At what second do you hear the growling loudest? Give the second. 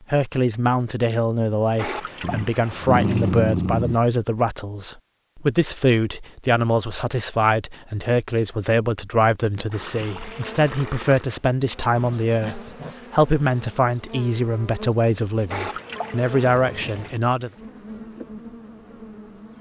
3 s.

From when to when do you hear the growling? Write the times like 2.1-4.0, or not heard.
2.2-4.0, 11.9-12.9.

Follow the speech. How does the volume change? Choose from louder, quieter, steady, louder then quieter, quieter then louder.
steady.